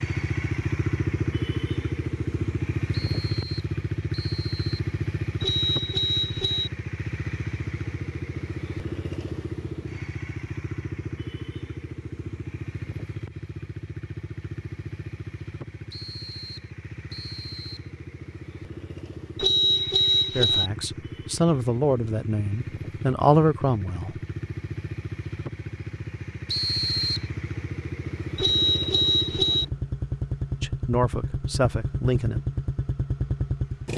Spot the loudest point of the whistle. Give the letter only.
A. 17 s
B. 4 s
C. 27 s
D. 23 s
C.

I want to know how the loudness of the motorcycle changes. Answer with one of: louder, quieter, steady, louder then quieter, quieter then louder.
quieter then louder.